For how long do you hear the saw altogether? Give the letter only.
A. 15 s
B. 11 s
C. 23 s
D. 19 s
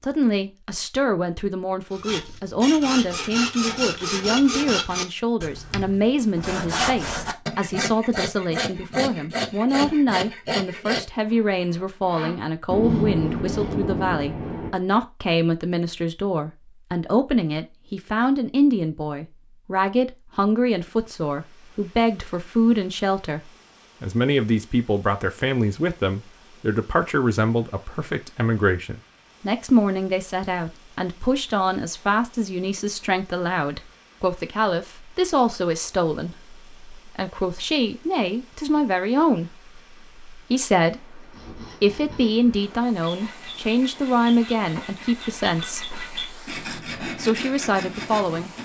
D.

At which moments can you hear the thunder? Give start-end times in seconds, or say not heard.
12.7-14.7.